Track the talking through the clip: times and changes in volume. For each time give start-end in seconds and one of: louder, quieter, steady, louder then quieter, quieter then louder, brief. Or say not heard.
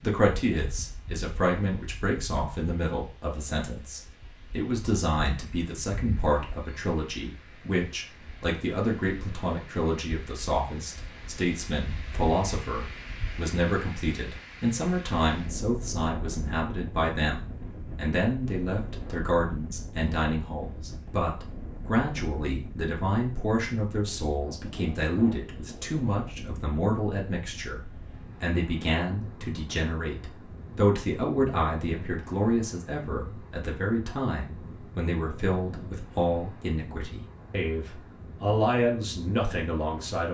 0.0-40.2 steady.